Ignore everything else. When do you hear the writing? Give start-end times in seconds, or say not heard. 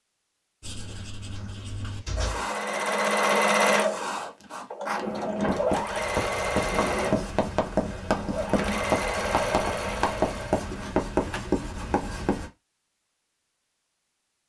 0.6-12.5.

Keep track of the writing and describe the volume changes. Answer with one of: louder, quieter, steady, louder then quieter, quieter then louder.
louder.